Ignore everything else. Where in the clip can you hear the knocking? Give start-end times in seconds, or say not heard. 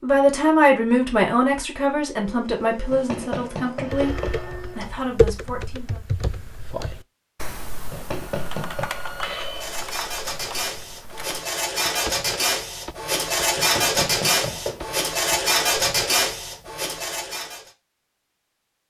2.9-4.5, 7.9-8.9, 13.6-14.9.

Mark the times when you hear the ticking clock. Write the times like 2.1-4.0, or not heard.
not heard.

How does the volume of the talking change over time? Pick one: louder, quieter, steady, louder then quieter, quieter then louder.
quieter.